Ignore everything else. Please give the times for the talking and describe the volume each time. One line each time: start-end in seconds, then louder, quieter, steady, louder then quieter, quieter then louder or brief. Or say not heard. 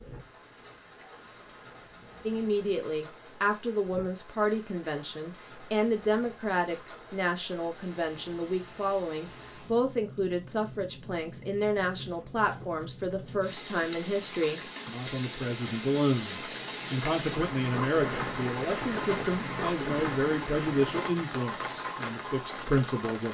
2.2-23.2 steady.